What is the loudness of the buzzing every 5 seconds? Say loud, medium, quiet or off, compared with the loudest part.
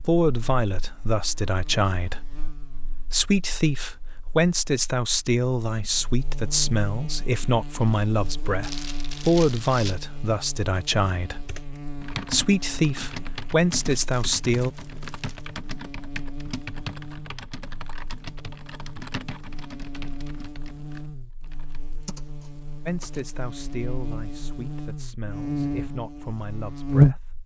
quiet, quiet, quiet, quiet, quiet, loud.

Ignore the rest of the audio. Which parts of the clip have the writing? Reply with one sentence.
The writing can't be heard in this clip.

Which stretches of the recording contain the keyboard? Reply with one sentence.
You can hear the keyboard from 11.4 to 23.2 s.